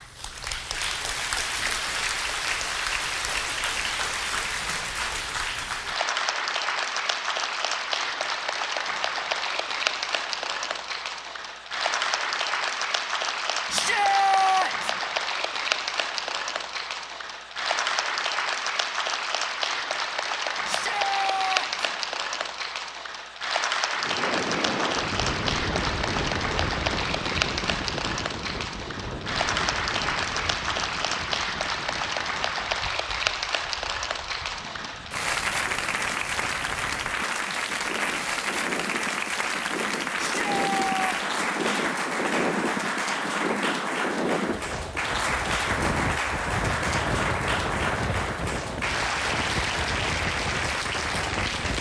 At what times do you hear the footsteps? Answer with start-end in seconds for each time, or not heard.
not heard.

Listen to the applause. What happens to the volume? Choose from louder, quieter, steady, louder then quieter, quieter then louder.
steady.